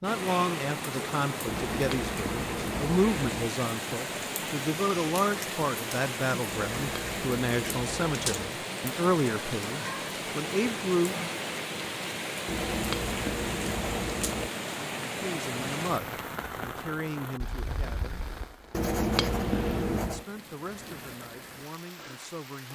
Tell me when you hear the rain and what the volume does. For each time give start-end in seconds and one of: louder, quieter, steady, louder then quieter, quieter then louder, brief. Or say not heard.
0.0-22.6 quieter.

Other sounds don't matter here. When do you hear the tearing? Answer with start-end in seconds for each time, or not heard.
not heard.